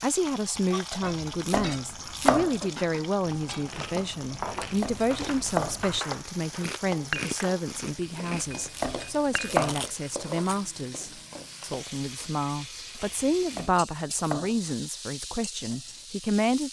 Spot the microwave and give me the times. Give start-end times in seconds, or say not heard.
not heard.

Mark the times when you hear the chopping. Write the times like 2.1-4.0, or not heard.
1.0-2.5, 4.3-5.8, 8.3-9.8, 13.1-14.6.